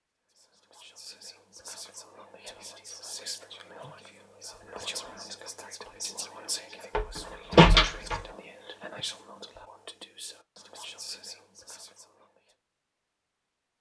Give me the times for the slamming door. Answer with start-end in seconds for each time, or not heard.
7.0-8.2.